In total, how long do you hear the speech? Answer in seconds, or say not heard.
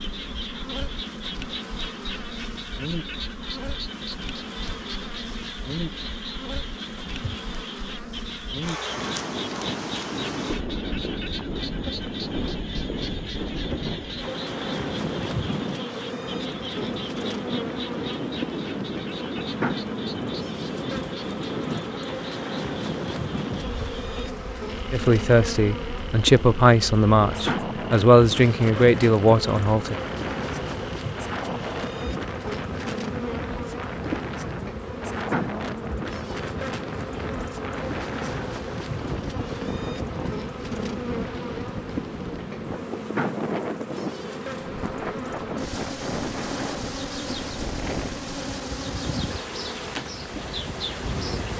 5 s.